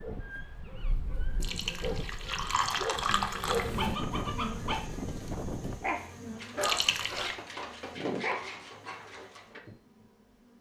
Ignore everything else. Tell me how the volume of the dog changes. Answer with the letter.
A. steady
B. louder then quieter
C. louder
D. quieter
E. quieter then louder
C.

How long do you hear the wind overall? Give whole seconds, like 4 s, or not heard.
6 s.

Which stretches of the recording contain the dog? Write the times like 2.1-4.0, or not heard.
0.0-9.6.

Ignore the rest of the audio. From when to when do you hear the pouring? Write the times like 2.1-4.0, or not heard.
1.4-3.8, 6.6-7.3.